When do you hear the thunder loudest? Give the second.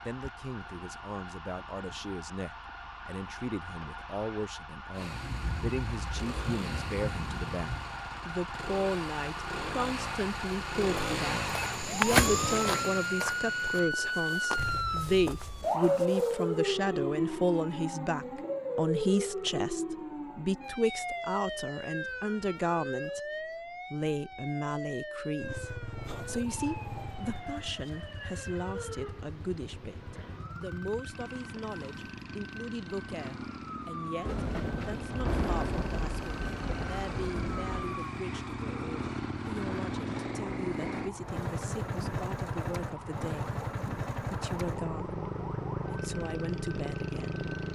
35 s.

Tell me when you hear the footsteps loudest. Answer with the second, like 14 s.
12 s.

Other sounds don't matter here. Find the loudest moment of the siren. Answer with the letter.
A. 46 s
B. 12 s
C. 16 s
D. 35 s
C.